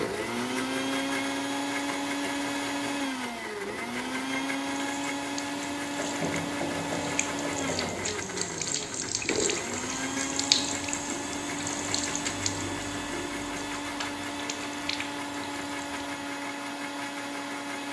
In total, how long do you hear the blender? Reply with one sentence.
You can hear the blender for 18 seconds altogether.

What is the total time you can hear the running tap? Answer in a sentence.
You can hear the running tap for 12 seconds altogether.